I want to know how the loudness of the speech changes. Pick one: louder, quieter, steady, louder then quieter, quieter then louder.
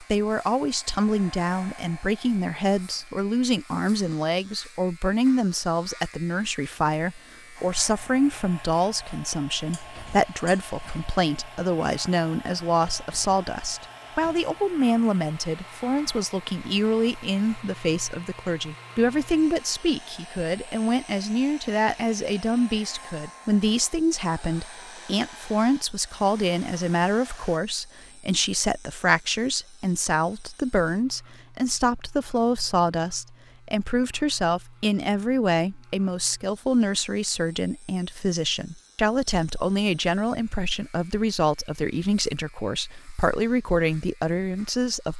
steady.